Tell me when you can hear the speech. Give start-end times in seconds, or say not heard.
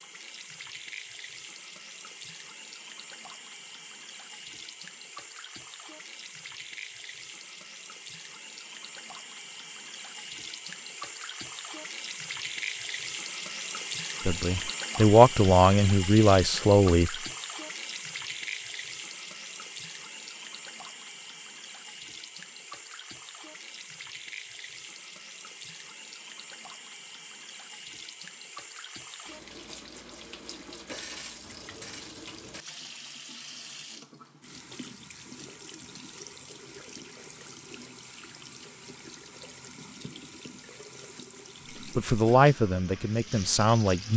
14.2-17.1, 41.9-44.1.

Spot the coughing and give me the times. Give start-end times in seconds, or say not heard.
not heard.